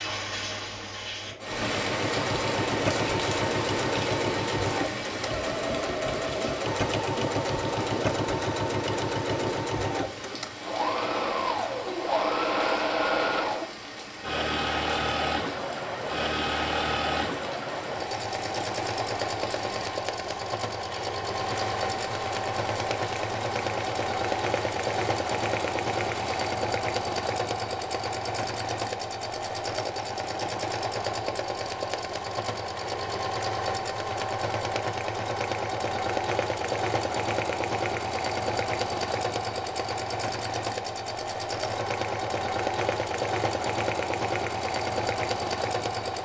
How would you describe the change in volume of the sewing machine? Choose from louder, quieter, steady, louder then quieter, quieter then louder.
steady.